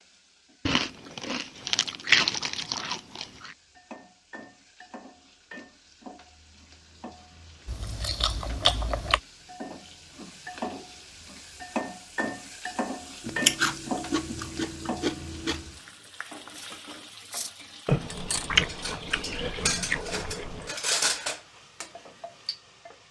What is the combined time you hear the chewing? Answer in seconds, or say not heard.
10 s.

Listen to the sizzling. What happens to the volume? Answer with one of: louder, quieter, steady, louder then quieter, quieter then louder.
louder then quieter.